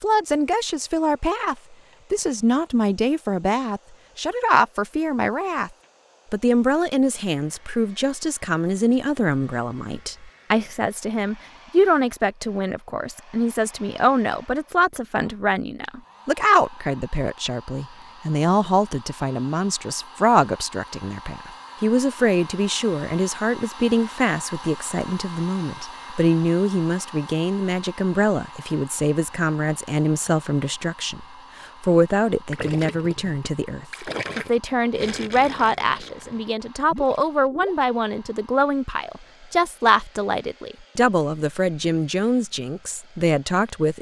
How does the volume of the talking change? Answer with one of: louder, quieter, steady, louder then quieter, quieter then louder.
steady.